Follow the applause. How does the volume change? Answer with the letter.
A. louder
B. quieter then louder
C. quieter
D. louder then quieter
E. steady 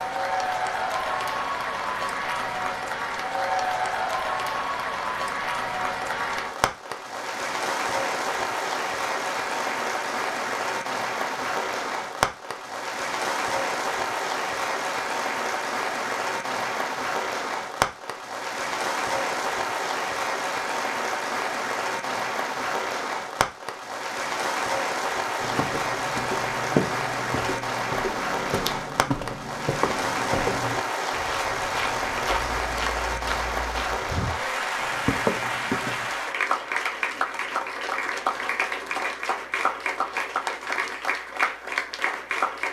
E.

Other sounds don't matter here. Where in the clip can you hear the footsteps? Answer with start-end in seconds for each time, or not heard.
25.4-36.0.